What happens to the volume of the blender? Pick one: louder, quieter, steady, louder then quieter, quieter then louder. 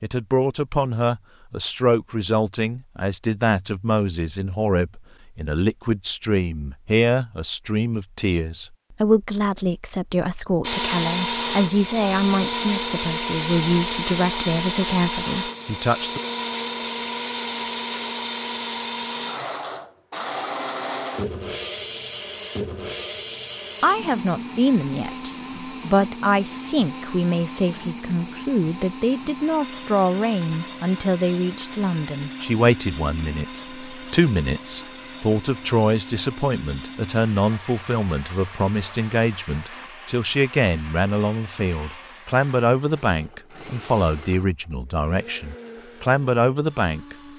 quieter.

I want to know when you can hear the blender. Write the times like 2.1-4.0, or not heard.
10.6-47.3.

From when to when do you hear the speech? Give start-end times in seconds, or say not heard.
0.0-16.2, 23.8-47.1.